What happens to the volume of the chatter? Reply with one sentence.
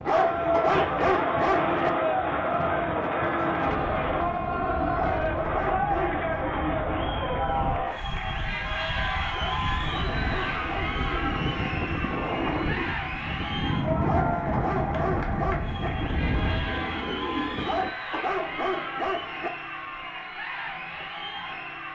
The volume of the chatter goes down.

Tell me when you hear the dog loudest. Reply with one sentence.
The volume of the dog peaks at 1 second.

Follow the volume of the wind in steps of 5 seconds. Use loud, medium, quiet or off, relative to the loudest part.
medium, medium, loud, loud, off.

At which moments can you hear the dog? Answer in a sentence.
You can hear the dog from 0.1 to 1.9 s, from 5.0 to 6.2 s, from 9.3 to 10.9 s, from 14.0 to 15.9 s and from 17.6 to 19.5 s.